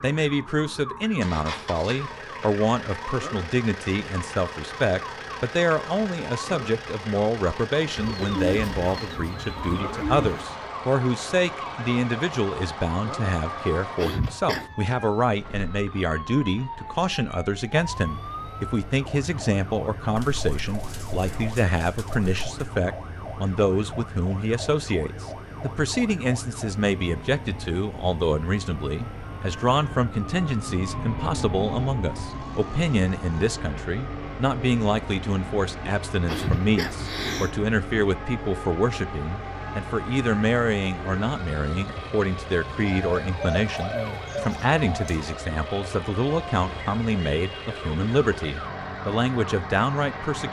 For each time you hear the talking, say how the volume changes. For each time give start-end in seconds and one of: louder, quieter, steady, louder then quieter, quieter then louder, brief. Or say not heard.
0.0-50.4 steady.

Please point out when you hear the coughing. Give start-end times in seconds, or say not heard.
13.9-14.8, 36.2-37.5.